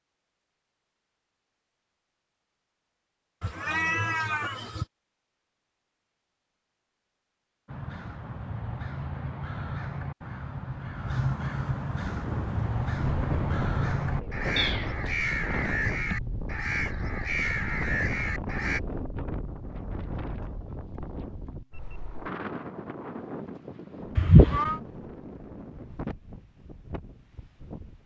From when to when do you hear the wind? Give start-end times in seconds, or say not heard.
12.0-28.0.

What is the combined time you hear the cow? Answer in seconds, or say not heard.
not heard.